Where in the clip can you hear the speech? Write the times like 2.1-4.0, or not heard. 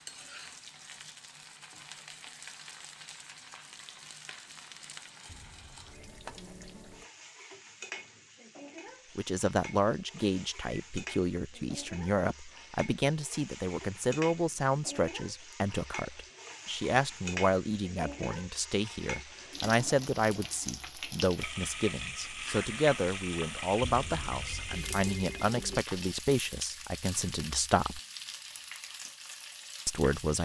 9.2-28.0, 29.9-30.4.